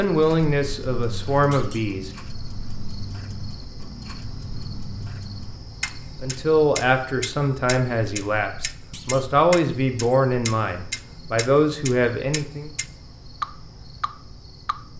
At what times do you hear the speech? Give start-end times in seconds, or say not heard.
0.0-2.1, 6.2-12.7.